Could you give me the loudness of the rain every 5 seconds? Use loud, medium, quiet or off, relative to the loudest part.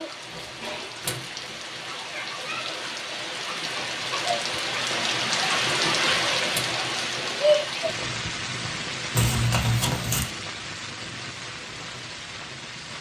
medium, loud, medium.